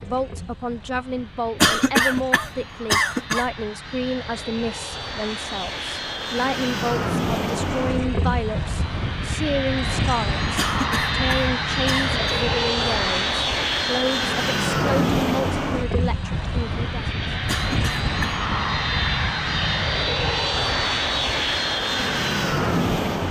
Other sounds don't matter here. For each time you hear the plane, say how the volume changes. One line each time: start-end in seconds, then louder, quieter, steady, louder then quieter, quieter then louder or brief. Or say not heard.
0.0-23.2 louder.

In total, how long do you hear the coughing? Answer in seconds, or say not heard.
4 s.